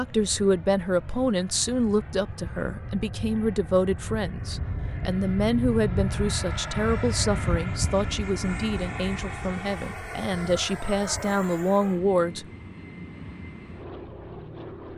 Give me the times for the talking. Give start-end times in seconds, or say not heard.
0.0-12.4.